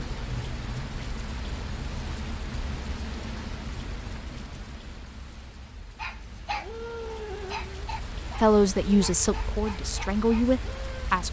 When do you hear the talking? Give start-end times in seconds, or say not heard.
8.4-11.2.